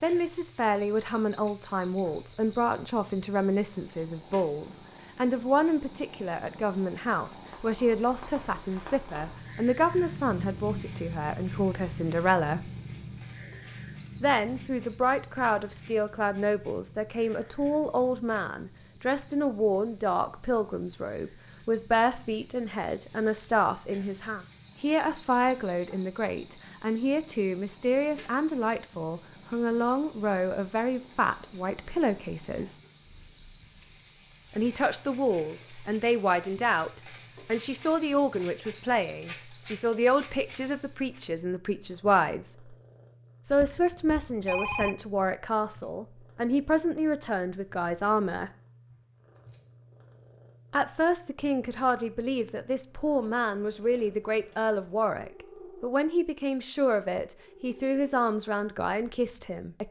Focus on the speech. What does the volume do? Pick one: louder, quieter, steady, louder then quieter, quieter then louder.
steady.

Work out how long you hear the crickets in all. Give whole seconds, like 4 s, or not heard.
41 s.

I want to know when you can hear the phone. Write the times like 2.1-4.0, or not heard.
43.5-44.9.